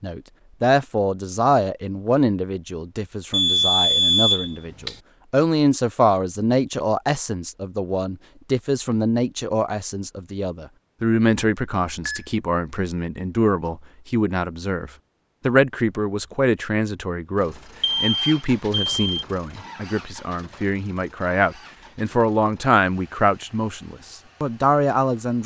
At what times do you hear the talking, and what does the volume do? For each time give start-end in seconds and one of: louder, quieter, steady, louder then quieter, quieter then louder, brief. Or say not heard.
0.0-25.4 steady.